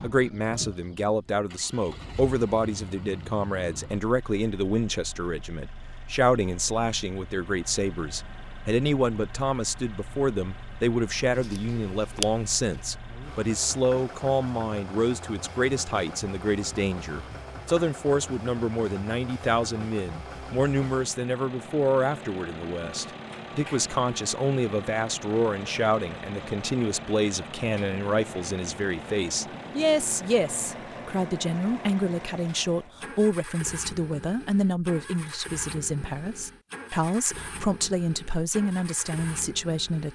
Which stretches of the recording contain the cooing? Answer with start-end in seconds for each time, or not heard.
11.3-12.8.